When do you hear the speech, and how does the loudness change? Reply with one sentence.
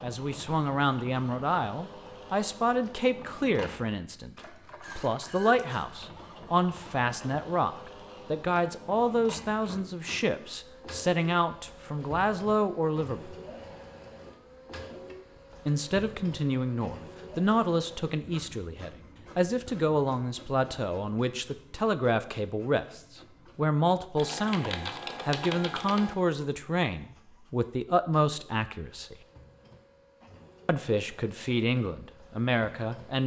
The speech can be heard from 0.0 to 13.3 s, at a steady volume; from 15.7 to 29.1 s, at a steady volume; and briefly from 30.6 to 33.2 s.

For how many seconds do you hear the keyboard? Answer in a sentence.
The keyboard can be heard for 2 seconds in total.